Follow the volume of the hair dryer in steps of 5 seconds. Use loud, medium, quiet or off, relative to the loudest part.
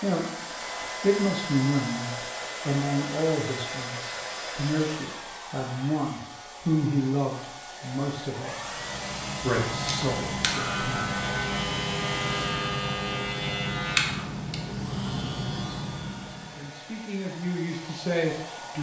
loud, loud, loud, medium.